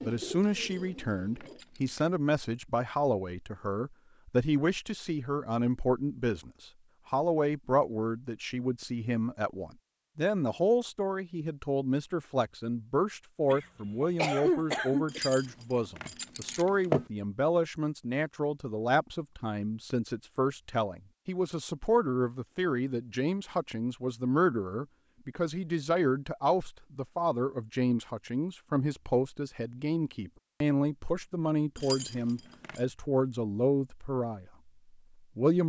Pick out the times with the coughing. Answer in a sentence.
You can hear the coughing from 13.5 to 15.3 s.